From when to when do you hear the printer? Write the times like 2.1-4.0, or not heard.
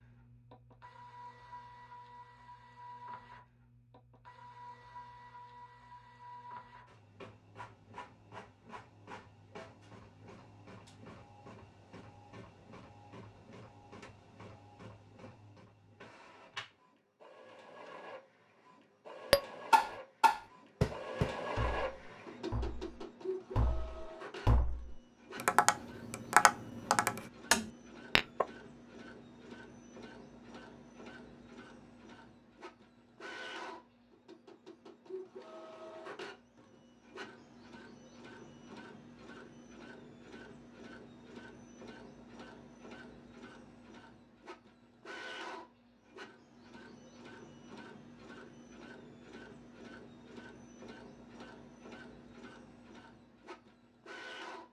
0.0-54.6.